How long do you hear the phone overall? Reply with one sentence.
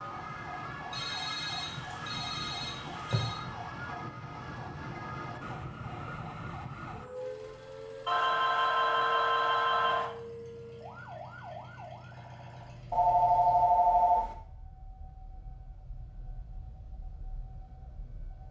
The phone can be heard for 6 seconds in total.